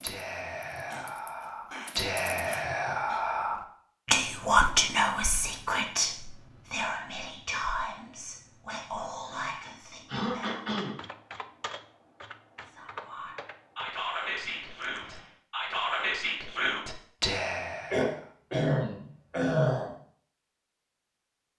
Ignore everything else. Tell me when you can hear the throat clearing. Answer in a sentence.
You can hear the throat clearing from 0.7 to 3.2 s, from 10.1 to 10.9 s and from 17.9 to 19.9 s.